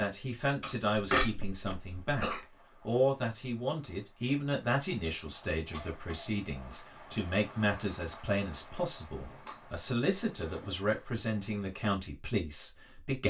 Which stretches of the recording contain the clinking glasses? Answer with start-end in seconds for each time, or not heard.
0.6-1.2.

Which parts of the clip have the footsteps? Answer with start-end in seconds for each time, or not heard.
not heard.